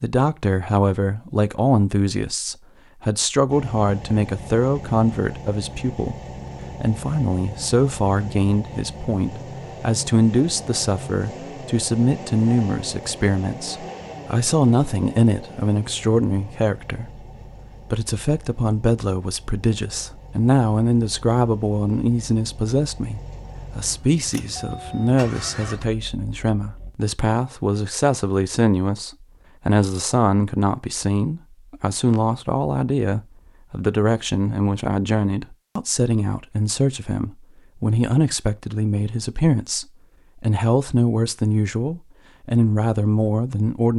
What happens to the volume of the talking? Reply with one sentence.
The volume of the talking stays about the same.